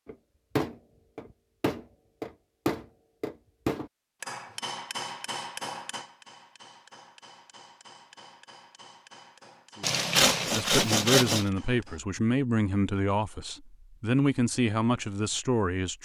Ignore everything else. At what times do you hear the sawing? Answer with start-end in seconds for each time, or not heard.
9.8-11.5.